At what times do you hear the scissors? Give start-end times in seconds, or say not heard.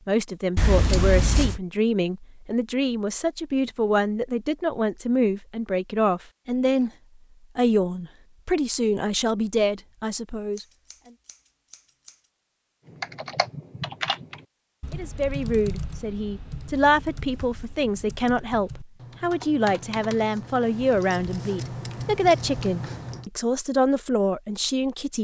0.6-1.6, 10.6-12.2, 20.6-23.2.